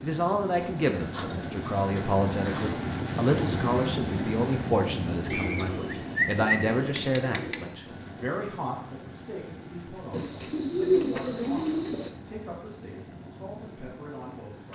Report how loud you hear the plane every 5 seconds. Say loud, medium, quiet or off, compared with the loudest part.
loud, medium, quiet.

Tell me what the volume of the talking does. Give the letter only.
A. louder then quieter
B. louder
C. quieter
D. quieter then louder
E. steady
C.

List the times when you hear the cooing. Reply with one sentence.
You can hear the cooing from 1.0 to 2.8 s, from 5.3 to 7.7 s and from 10.1 to 12.1 s.